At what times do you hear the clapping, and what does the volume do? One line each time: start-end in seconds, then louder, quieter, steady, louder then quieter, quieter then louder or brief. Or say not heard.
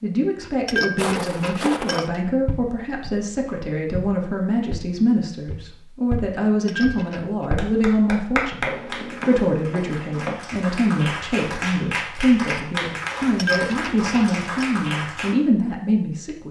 7.5-15.3 quieter then louder.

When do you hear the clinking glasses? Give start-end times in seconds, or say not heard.
0.4-2.2, 6.5-7.5, 13.3-14.4.